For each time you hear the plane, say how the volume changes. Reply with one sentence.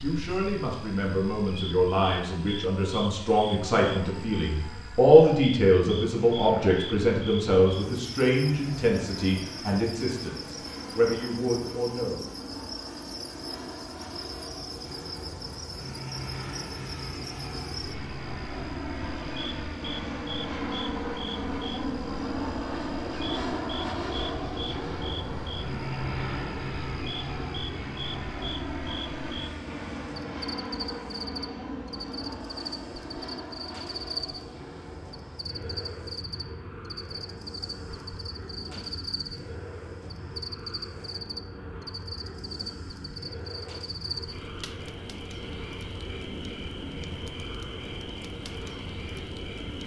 You can hear the plane from 0.0 to 49.8 s, getting louder then quieter.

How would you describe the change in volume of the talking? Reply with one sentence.
The volume of the talking goes up, then down.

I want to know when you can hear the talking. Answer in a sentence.
The talking can be heard from 0.0 to 12.2 s.